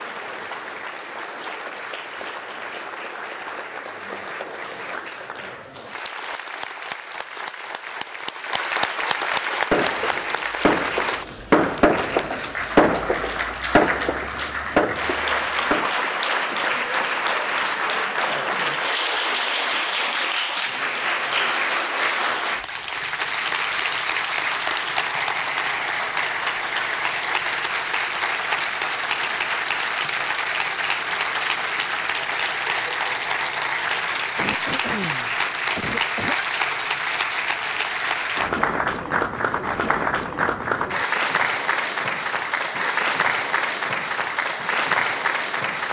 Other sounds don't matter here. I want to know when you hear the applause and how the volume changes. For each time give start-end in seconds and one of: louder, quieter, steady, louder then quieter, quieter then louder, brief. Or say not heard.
0.0-45.8 louder.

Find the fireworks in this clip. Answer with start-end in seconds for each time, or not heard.
9.7-16.1.